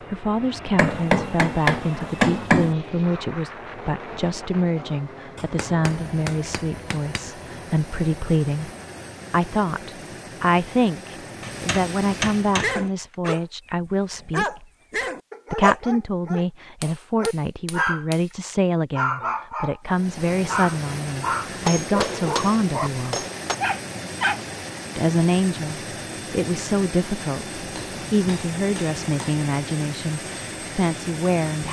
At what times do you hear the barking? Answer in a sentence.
The barking can be heard from 12.6 to 18.1 s, from 18.9 to 19.8 s, from 20.4 to 22.9 s and from 23.6 to 24.4 s.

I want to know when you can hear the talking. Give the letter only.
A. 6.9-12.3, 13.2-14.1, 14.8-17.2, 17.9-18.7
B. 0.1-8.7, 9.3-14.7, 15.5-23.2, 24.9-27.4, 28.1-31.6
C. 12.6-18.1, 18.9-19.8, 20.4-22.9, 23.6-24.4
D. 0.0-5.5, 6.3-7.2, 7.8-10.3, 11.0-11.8
B.